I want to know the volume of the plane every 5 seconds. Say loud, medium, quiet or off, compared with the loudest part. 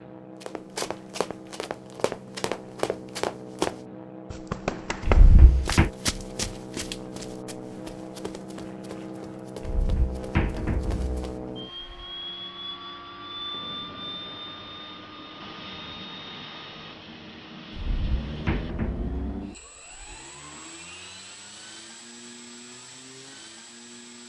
medium, loud, loud, loud, medium.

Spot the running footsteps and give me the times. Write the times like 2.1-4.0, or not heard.
0.4-11.3.